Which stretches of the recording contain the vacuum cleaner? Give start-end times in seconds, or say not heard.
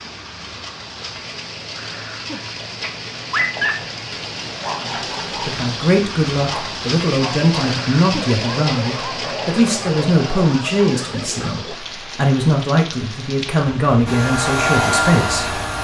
14.1-15.7.